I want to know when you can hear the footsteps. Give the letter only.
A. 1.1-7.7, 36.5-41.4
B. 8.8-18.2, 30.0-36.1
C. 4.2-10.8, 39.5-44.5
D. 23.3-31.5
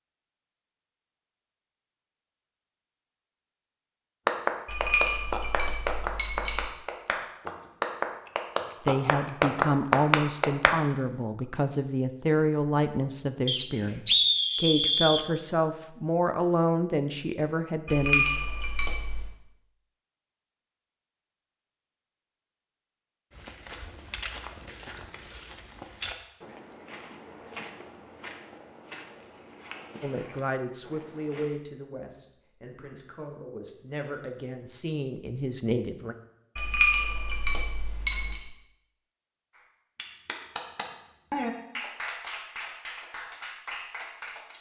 D.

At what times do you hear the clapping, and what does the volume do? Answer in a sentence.
You can hear the clapping from 4.2 to 10.8 s, getting louder; and from 39.5 to 44.5 s, getting louder then quieter.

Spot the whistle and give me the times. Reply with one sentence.
You can hear the whistle from 13.4 to 15.2 s.